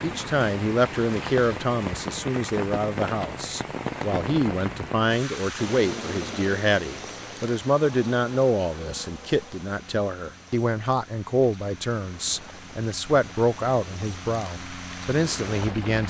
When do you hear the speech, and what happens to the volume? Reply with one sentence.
The speech can be heard from 0.0 to 16.0 s, at a steady volume.